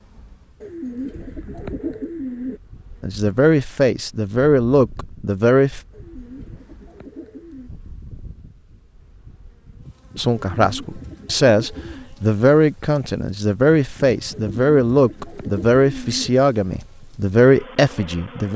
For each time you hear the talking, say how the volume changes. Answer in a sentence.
The talking can be heard briefly from 3.0 to 5.8 s; and from 10.2 to 18.5 s, at a steady volume.